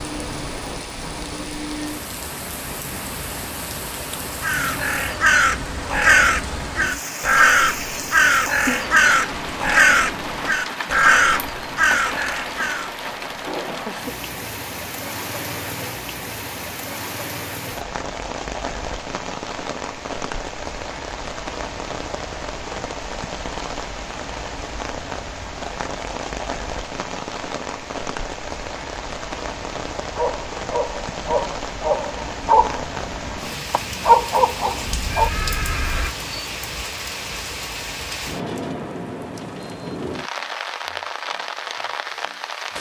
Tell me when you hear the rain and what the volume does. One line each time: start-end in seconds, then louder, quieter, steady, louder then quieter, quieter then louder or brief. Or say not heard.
0.0-42.7 steady.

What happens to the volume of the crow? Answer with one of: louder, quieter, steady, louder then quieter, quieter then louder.
steady.